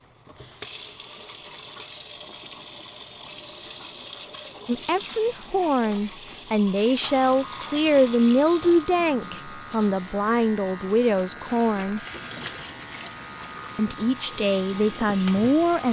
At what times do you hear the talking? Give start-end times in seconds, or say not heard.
4.7-12.0, 13.8-15.8.